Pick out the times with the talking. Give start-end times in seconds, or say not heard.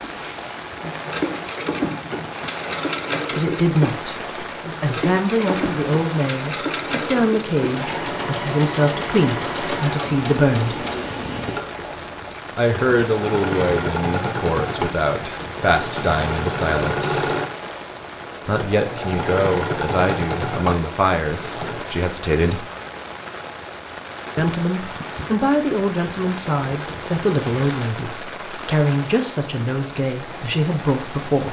3.4-4.2, 4.8-10.8, 12.6-17.3, 18.4-22.6, 24.4-31.4.